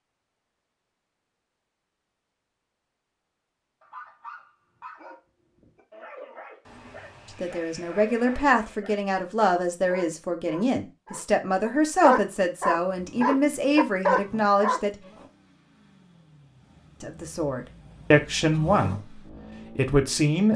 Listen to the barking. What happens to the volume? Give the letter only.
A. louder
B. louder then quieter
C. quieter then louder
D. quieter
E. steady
A.